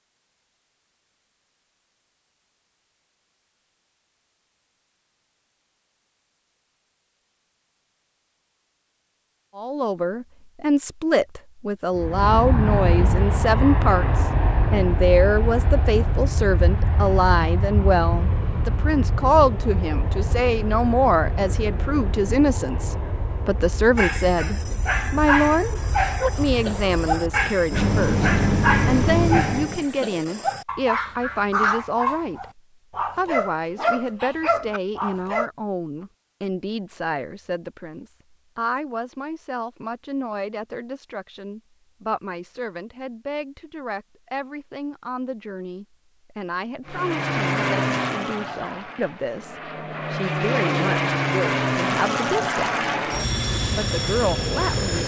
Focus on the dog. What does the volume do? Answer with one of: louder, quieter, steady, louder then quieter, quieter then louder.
steady.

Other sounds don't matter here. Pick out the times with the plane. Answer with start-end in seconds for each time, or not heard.
11.9-29.9, 46.9-55.0.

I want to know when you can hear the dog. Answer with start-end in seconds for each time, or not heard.
23.9-35.5.